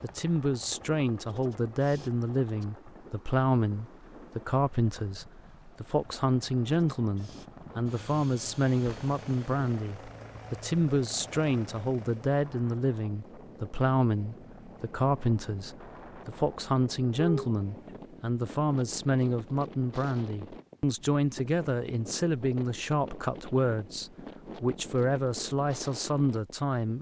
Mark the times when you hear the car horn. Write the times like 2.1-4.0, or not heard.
17.1-17.6.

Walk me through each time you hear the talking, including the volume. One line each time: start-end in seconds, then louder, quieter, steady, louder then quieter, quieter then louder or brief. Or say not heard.
0.0-26.9 steady.